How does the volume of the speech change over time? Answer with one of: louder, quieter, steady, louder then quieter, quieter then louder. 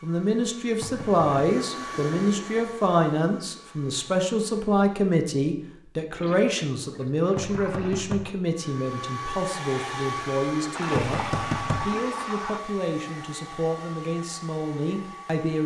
quieter.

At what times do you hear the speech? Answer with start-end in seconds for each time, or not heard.
0.0-15.6.